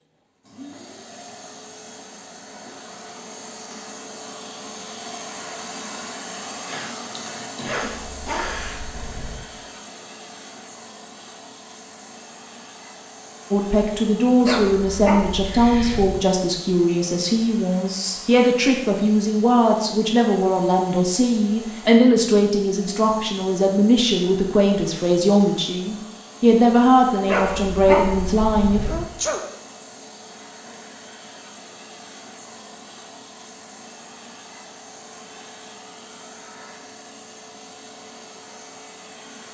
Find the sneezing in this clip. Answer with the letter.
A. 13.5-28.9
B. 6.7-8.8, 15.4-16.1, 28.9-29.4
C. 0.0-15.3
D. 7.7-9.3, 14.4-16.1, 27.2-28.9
B.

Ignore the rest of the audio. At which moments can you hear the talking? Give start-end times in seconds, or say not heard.
13.5-28.9.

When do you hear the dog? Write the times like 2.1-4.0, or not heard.
7.7-9.3, 14.4-16.1, 27.2-28.9.